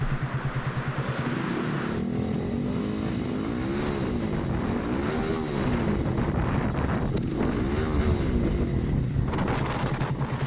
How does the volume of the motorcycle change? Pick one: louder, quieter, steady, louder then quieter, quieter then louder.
steady.